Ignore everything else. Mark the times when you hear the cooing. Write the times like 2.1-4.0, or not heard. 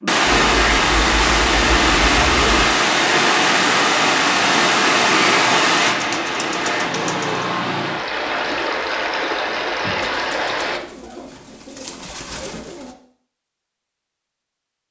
0.2-2.7, 5.8-7.5, 10.0-12.9.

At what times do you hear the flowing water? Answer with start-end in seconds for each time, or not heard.
0.0-10.8.